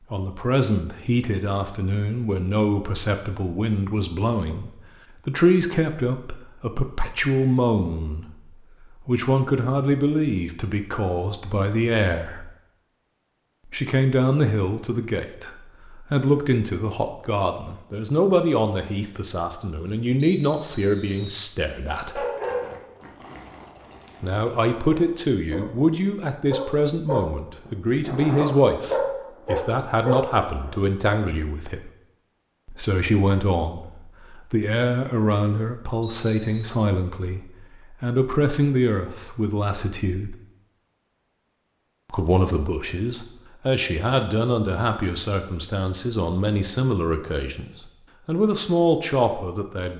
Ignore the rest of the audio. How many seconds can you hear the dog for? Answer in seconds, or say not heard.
8 s.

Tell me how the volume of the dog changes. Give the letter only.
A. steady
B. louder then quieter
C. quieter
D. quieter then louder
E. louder
D.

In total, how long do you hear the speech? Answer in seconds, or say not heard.
44 s.